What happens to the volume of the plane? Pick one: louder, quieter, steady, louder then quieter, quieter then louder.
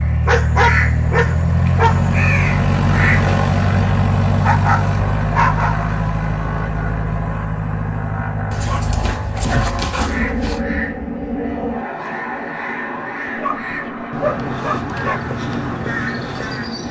quieter.